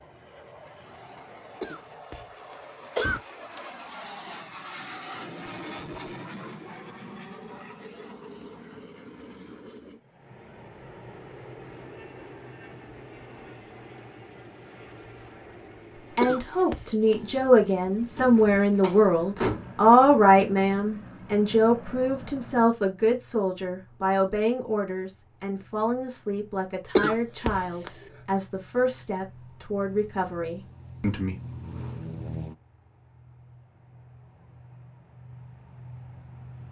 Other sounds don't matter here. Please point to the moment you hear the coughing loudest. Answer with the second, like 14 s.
27 s.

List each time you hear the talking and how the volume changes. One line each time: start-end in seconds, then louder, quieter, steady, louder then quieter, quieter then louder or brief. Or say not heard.
16.1-31.4 quieter.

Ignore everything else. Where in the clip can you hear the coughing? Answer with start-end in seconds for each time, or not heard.
1.6-2.2, 3.0-3.6, 16.2-17.1, 26.9-27.9.